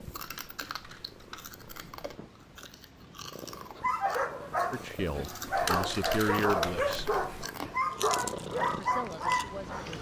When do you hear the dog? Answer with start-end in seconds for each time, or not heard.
3.8-9.9.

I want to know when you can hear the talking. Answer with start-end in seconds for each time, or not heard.
4.7-7.1, 8.8-9.8.